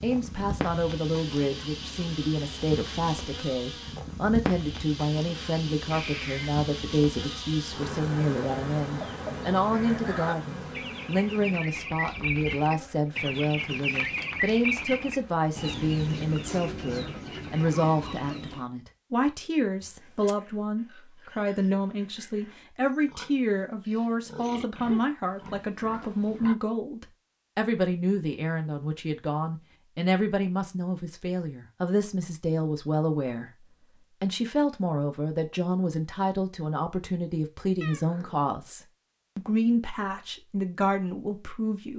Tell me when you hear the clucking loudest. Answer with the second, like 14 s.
15 s.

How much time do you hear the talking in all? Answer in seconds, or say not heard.
42 s.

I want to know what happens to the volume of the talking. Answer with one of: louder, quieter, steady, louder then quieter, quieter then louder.
steady.